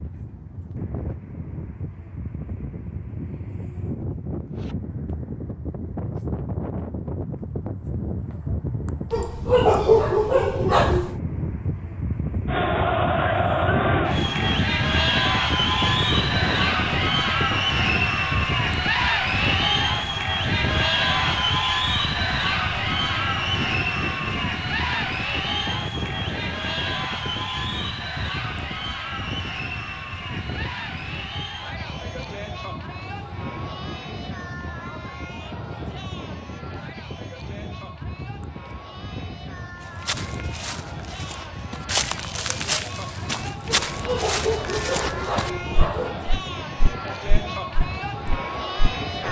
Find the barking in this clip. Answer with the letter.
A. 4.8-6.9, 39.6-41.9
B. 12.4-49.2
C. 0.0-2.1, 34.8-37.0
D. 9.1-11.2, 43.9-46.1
D.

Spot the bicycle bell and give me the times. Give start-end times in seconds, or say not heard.
not heard.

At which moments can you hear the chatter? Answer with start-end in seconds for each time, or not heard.
12.4-49.2.